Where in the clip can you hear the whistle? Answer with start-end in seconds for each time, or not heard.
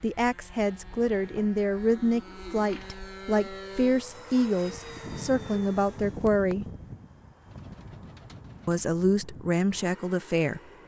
not heard.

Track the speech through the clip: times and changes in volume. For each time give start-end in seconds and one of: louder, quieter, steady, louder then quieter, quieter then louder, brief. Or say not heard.
0.0-6.7 steady
8.7-10.6 brief.